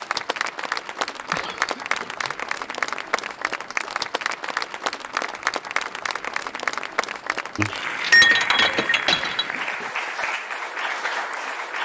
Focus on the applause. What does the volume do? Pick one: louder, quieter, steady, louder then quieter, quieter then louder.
steady.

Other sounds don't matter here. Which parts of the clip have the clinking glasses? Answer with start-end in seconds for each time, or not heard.
7.5-9.4.